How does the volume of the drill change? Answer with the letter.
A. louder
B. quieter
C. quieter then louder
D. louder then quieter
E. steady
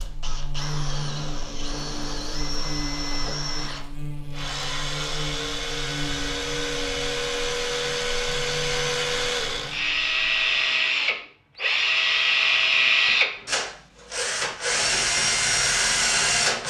A.